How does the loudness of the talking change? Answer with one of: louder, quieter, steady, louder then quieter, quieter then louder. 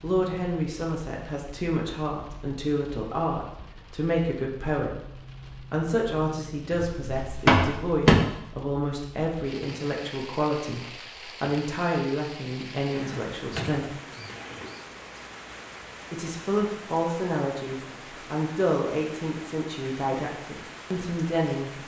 steady.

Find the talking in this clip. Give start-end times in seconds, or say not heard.
0.0-13.9, 16.1-21.7.